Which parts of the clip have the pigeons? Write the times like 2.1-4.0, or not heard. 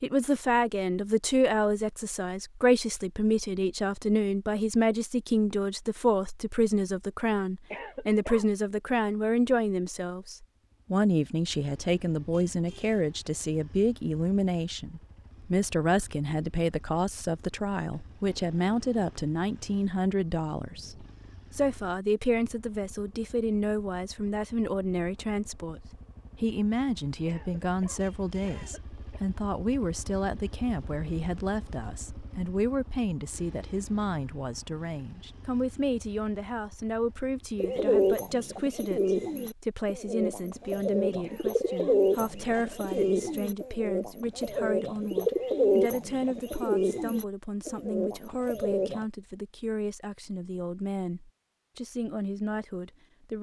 37.5-49.0.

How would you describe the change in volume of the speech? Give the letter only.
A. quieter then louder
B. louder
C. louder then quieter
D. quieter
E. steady
D.